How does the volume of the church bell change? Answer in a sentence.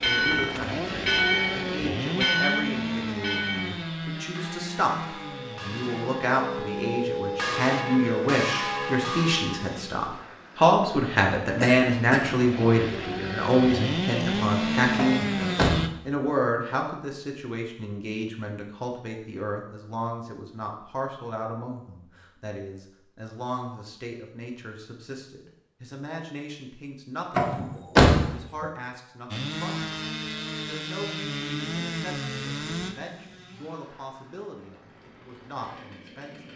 The volume of the church bell goes down, then up.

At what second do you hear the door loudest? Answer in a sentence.
The volume of the door peaks at 28 seconds.